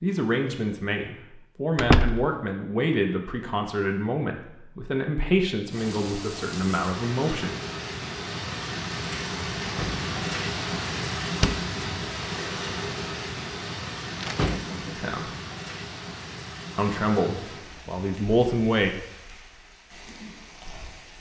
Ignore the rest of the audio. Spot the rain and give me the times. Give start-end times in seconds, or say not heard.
5.7-21.1.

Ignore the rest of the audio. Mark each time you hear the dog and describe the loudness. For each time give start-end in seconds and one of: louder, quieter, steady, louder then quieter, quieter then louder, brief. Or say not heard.
not heard.